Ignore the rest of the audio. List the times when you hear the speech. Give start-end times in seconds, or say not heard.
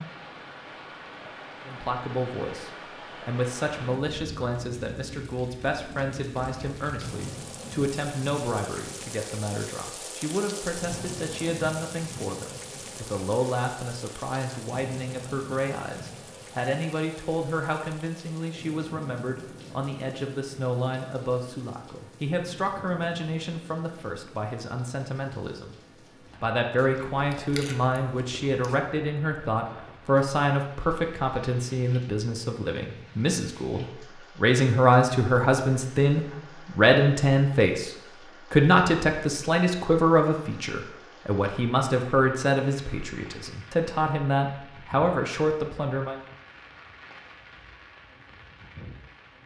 1.6-25.8, 26.4-46.2.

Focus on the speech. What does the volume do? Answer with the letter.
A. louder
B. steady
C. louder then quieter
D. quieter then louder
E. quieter
A.